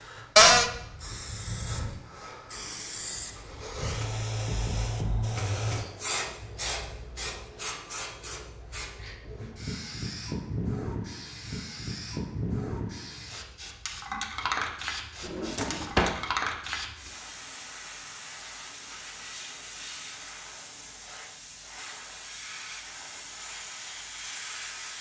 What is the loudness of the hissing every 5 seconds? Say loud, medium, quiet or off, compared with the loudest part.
loud, loud, loud, loud, medium.